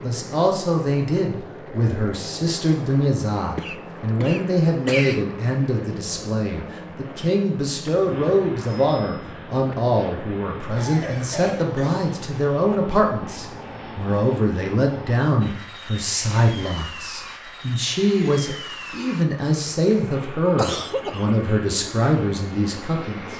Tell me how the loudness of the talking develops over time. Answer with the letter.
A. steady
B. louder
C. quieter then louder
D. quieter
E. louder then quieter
A.